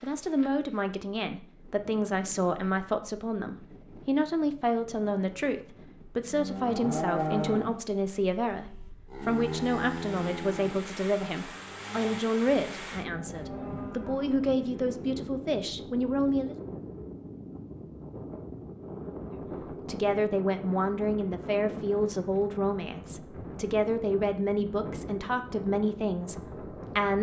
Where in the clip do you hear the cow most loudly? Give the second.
7 s.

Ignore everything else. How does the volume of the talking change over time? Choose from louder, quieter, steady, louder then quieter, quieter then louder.
steady.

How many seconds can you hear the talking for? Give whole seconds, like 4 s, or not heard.
24 s.